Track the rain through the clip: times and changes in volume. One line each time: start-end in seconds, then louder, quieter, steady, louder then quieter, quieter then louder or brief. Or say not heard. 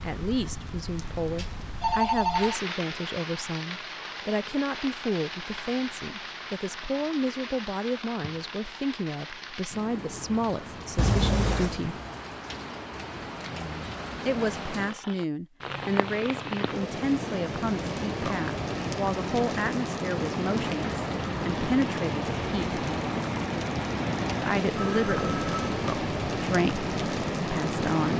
0.0-28.1 louder.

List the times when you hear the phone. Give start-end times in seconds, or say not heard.
1.4-2.6, 10.9-11.8, 24.8-25.8.